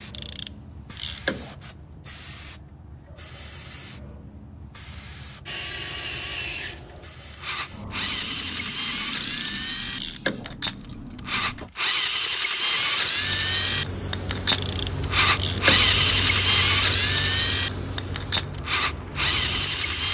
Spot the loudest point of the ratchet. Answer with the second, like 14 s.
16 s.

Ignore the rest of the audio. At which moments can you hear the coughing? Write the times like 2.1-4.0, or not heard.
not heard.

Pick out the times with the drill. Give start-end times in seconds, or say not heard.
5.5-20.0.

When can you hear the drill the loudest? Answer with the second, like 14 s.
16 s.